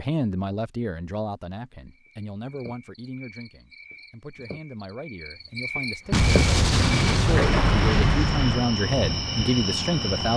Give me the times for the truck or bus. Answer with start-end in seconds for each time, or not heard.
6.0-10.3.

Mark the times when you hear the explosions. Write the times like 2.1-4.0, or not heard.
6.1-8.7.